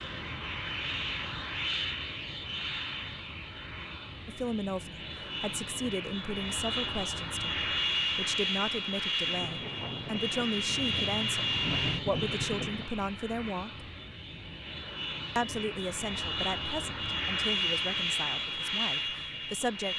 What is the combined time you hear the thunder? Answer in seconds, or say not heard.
4 s.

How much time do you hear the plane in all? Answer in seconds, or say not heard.
20 s.